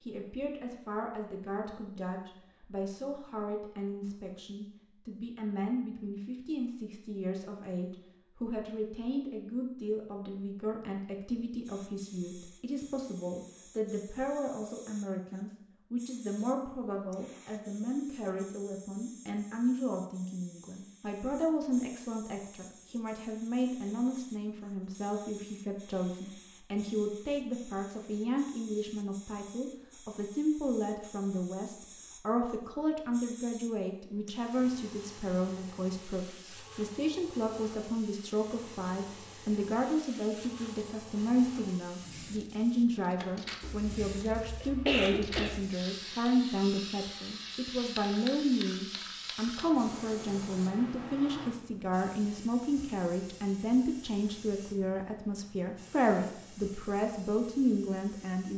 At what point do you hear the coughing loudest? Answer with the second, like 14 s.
45 s.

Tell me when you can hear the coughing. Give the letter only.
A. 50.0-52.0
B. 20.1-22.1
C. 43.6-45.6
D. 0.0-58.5
C.